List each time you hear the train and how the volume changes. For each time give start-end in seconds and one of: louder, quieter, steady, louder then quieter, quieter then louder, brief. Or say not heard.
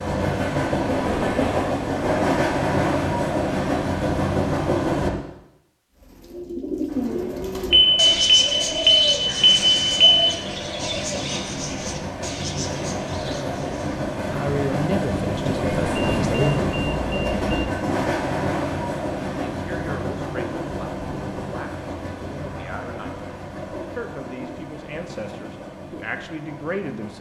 0.0-5.1 steady
6.8-27.1 louder then quieter.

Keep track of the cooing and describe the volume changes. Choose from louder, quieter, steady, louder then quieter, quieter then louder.
quieter.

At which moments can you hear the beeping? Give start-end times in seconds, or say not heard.
7.7-10.3, 15.8-17.6.